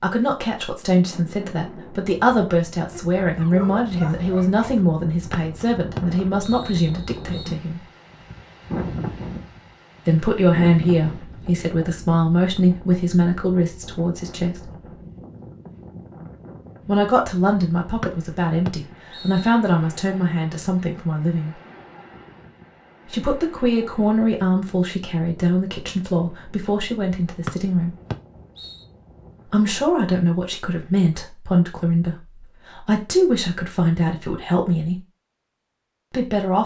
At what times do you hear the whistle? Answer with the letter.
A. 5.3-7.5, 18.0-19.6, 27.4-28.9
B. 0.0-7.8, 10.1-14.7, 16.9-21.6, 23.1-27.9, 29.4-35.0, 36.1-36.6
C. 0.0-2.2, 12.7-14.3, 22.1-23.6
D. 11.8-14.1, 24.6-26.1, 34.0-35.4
A.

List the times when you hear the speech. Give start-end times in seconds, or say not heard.
0.0-7.8, 10.1-14.7, 16.9-21.6, 23.1-27.9, 29.4-35.0, 36.1-36.6.